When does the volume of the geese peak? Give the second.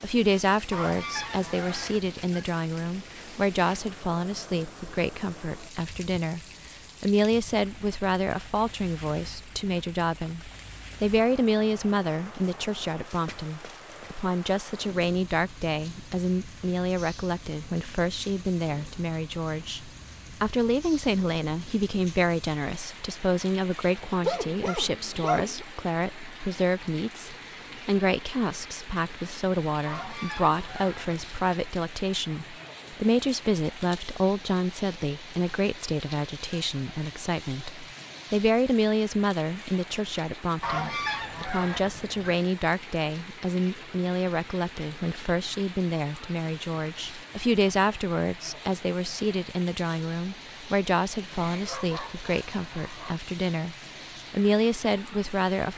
41 s.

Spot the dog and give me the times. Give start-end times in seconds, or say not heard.
23.9-25.6, 51.3-53.2.